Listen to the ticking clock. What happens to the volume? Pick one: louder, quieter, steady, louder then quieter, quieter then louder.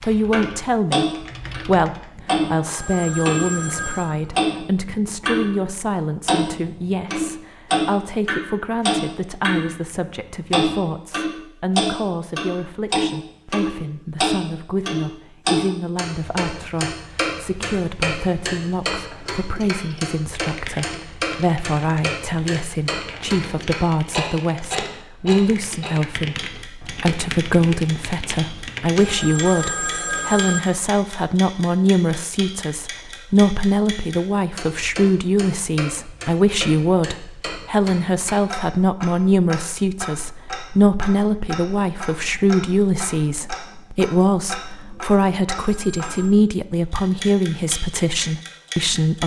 quieter.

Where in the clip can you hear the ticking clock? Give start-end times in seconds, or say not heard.
0.3-5.5, 6.2-49.2.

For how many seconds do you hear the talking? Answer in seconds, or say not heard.
49 s.